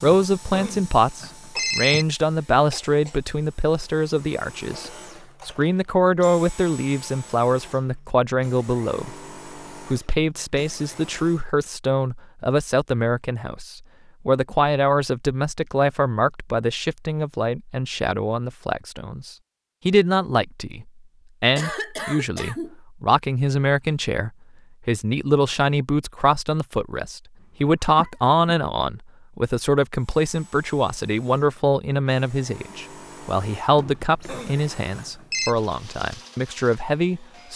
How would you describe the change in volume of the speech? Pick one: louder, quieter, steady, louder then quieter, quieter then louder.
steady.